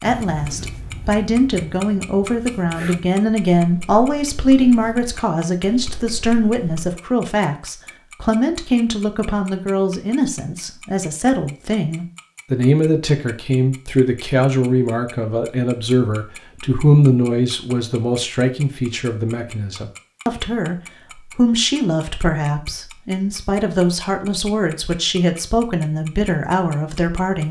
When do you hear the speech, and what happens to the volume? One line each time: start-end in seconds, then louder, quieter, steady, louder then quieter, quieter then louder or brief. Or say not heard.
0.0-27.4 steady.